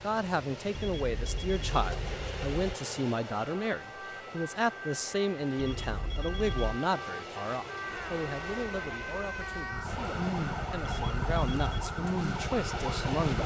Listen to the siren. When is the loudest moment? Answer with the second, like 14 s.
11 s.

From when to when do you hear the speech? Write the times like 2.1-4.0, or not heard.
0.0-13.4.